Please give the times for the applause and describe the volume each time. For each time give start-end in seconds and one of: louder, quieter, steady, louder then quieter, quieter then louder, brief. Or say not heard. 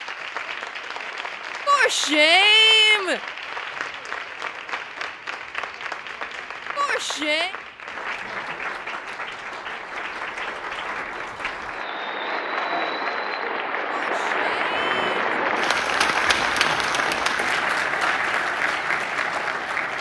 0.0-19.9 louder.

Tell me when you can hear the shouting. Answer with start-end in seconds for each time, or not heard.
1.6-3.2, 6.8-7.5, 13.9-15.2.